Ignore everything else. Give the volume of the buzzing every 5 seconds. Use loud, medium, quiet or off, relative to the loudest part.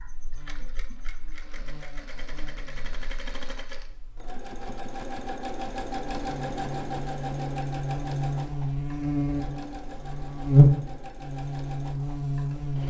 quiet, medium, loud.